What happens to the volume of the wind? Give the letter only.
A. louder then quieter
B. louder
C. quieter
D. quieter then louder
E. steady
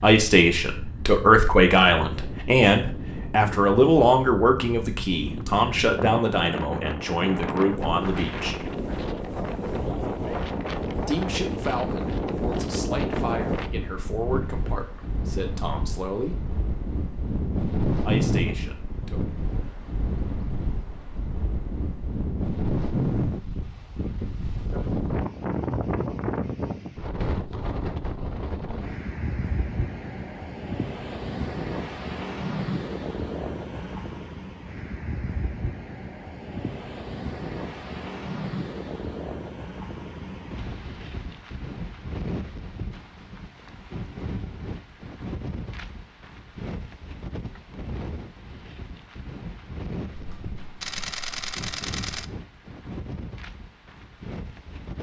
C.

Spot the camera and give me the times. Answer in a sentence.
You can hear the camera from 50.1 to 52.2 s.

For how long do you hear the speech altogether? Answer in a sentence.
The speech can be heard for 15 seconds in total.